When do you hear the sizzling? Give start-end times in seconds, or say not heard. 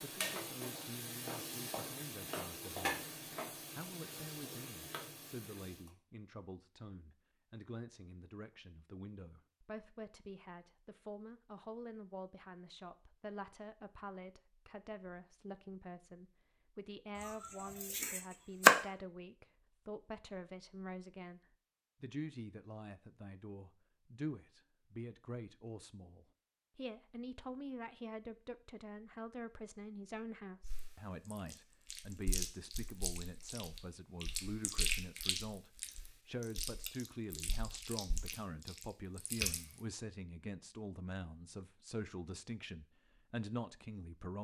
0.0-5.9.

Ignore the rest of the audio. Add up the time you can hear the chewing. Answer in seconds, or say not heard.
9 s.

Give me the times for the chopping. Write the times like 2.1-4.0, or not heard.
17.2-18.8.